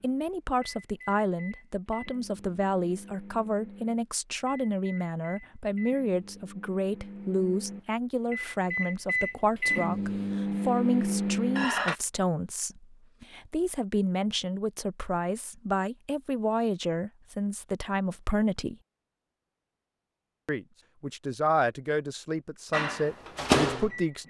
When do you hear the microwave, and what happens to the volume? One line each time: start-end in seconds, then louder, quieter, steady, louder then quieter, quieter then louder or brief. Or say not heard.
0.0-11.9 louder
22.7-24.2 brief.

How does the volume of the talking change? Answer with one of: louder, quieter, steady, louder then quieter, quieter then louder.
steady.